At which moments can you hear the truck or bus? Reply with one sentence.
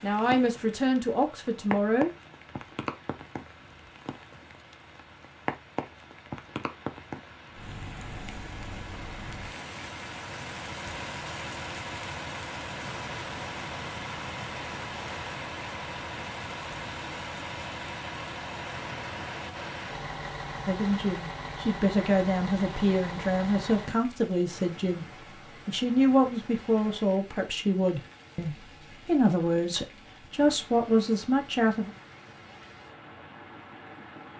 The truck or bus can be heard from 0.0 to 24.1 s.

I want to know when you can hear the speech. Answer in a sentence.
You can hear the speech from 0.0 to 2.1 s and from 20.6 to 31.9 s.